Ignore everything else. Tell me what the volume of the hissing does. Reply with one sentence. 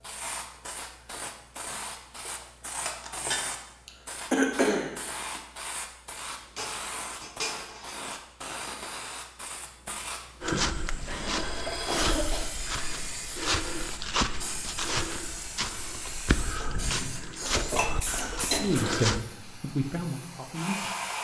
The volume of the hissing stays about the same.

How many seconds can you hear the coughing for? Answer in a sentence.
You can hear the coughing for 5 seconds altogether.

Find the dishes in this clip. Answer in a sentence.
The dishes can be heard from 2.1 to 3.6 s, from 6.5 to 8.0 s, from 11.1 to 12.1 s and from 17.4 to 18.9 s.